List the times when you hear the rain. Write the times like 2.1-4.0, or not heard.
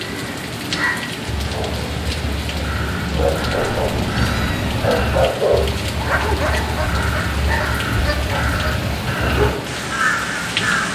0.0-10.8.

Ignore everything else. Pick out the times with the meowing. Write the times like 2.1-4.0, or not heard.
3.4-5.2.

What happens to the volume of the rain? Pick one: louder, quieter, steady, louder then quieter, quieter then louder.
steady.